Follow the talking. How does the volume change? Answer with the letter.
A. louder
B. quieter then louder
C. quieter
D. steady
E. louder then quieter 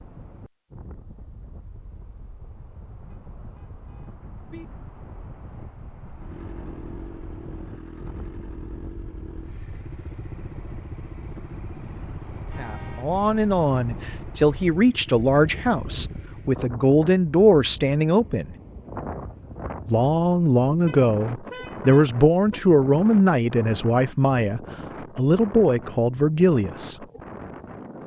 D.